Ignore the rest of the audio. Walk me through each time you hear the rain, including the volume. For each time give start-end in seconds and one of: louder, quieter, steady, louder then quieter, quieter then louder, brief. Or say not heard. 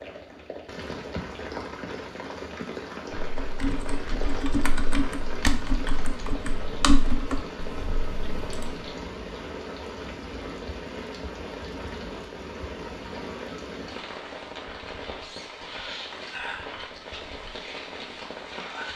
0.0-18.9 steady.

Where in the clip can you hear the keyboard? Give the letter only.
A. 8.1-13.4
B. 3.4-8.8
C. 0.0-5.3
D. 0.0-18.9
B.